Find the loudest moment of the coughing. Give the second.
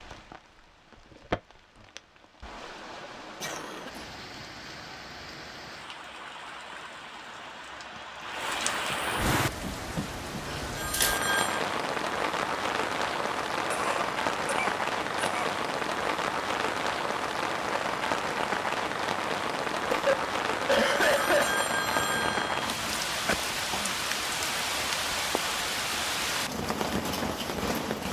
21 s.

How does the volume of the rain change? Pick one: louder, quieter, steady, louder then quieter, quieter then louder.
louder.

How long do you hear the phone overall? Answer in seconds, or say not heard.
3 s.